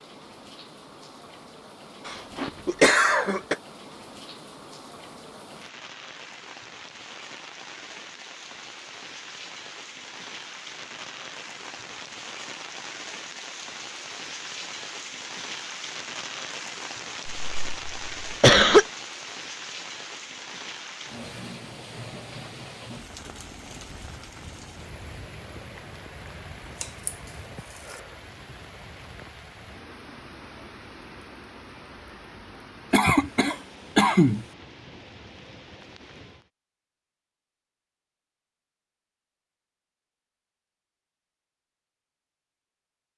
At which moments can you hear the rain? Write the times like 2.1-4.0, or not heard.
0.0-36.5.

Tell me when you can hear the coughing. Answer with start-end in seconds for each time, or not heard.
2.0-3.5, 17.4-18.9, 32.9-34.5.